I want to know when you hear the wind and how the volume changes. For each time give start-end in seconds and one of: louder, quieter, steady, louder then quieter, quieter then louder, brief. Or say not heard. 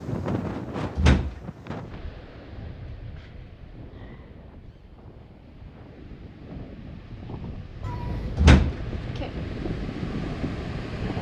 0.0-11.1 quieter then louder.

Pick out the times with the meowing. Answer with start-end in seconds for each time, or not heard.
7.8-8.4.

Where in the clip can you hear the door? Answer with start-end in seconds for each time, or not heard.
0.9-1.4, 8.3-9.2.